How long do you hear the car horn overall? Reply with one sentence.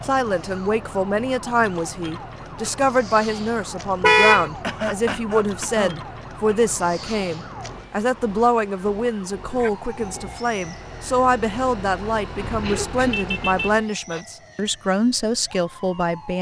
You can hear the car horn for 2 seconds altogether.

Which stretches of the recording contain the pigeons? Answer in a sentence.
You can't hear the pigeons here.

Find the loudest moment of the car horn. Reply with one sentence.
The loudest moment of the car horn is at 4 seconds.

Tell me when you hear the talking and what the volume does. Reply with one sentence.
You can hear the talking from 0.0 to 16.3 s, at a steady volume.